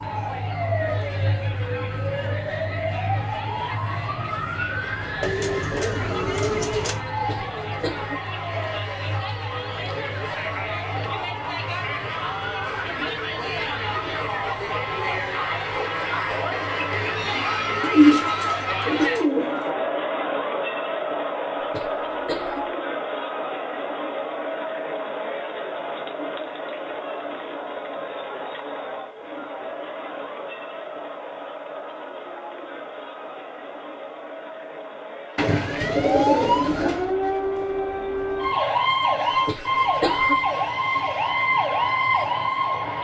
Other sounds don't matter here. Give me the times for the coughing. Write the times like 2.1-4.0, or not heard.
7.2-8.2, 21.6-22.7, 39.3-40.5.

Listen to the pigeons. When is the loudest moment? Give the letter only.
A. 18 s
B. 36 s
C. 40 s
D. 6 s
A.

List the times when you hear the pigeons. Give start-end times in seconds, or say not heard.
5.2-7.0, 17.8-19.7, 35.4-37.1.